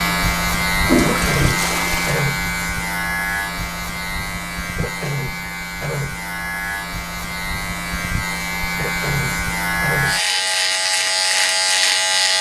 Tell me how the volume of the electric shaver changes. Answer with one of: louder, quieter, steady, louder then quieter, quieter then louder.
quieter then louder.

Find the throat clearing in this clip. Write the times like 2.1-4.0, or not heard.
1.0-2.4, 4.8-6.2, 8.8-10.2.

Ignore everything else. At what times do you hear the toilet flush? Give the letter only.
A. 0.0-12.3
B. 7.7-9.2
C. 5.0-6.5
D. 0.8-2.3
D.